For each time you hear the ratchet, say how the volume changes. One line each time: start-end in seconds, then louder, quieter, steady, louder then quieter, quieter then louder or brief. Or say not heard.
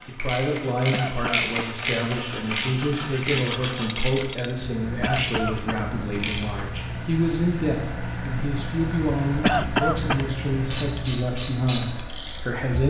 0.0-6.7 quieter
10.7-12.8 brief.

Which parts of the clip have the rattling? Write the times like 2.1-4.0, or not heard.
3.3-4.5.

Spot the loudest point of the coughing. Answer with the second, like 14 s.
10 s.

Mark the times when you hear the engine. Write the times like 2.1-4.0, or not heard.
4.4-12.8.